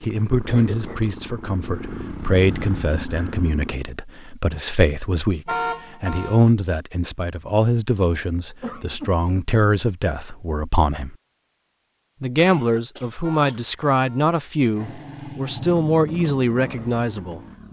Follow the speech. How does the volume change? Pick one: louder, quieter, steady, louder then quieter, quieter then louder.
steady.